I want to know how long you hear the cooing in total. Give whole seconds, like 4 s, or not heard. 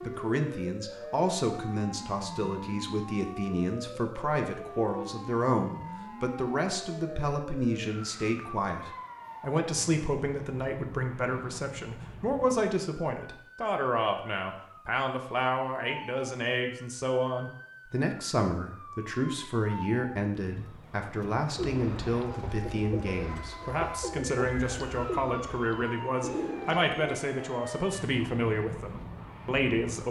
6 s.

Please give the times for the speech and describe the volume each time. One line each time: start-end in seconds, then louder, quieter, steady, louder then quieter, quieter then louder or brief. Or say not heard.
0.0-30.0 steady.